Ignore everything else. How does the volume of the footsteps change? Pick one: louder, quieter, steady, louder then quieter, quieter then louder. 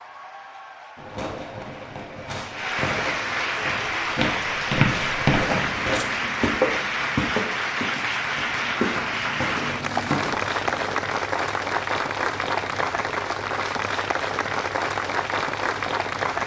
quieter.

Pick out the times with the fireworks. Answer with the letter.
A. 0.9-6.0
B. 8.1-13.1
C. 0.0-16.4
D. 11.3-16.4
A.